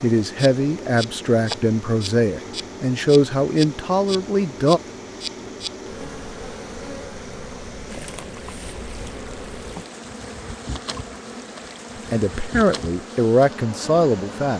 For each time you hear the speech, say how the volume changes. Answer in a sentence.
You can hear the speech from 0.0 to 4.8 s, at a steady volume; and briefly from 12.1 to 14.5 s.